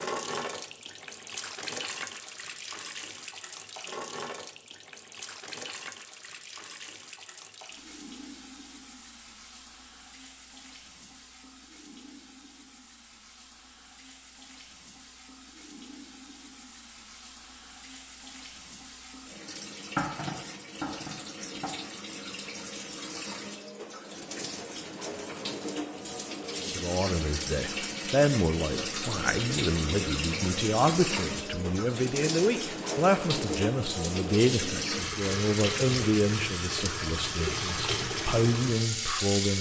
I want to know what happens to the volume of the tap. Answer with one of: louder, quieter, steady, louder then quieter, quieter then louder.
quieter then louder.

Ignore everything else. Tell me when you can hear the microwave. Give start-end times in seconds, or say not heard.
not heard.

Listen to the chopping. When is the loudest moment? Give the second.
20 s.